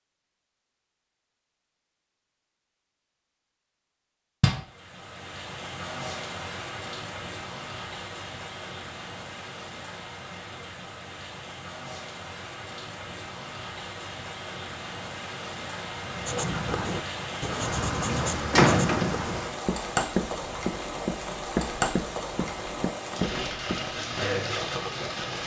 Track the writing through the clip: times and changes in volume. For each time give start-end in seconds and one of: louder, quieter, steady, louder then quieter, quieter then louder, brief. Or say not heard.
16.1-23.9 steady.